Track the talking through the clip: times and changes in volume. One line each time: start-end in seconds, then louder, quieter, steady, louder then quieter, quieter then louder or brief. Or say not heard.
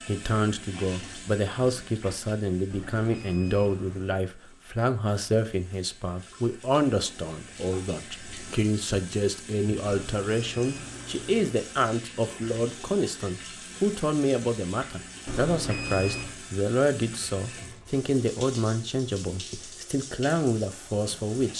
0.1-21.5 steady.